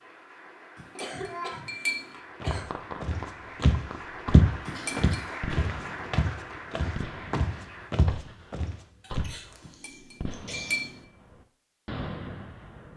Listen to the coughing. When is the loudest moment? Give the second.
1 s.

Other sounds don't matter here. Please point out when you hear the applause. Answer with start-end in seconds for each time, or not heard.
0.0-7.9.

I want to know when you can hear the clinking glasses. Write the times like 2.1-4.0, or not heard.
0.8-2.1, 4.7-5.2, 9.7-11.1.